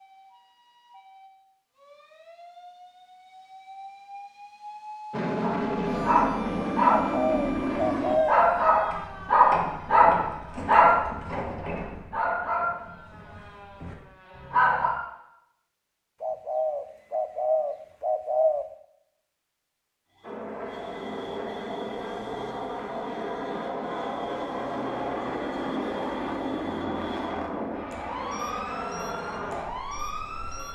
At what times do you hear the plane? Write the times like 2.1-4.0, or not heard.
5.1-8.2, 20.2-30.7.